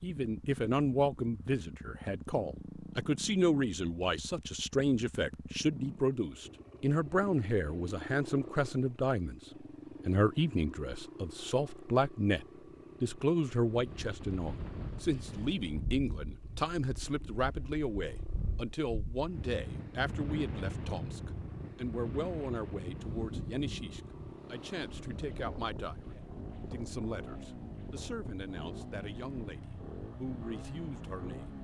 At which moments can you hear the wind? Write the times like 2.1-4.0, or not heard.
13.7-31.5.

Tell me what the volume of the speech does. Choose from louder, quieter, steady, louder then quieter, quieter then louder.
quieter.